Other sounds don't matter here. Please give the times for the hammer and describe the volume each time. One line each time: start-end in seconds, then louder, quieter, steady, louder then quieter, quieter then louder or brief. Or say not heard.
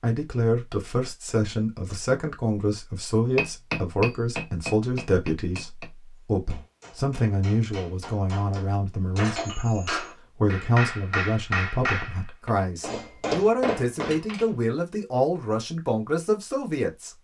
3.4-14.4 quieter then louder.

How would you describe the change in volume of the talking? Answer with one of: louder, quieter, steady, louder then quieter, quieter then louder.
steady.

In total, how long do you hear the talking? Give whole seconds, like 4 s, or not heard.
17 s.